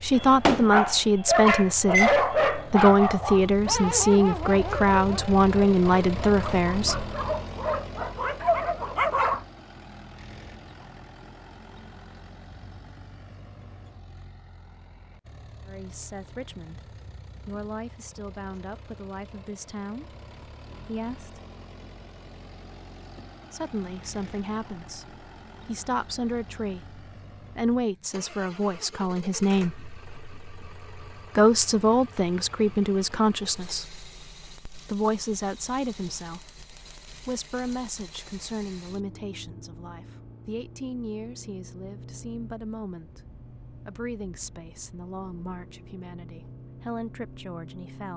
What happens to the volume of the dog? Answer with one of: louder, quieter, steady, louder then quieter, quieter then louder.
quieter then louder.